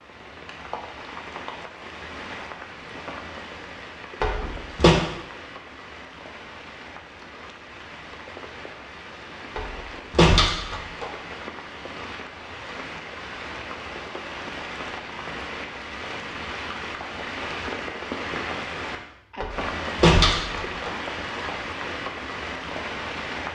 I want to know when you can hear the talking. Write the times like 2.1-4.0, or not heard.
not heard.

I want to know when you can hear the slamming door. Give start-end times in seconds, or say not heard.
4.2-5.0, 9.6-11.1, 19.4-20.9.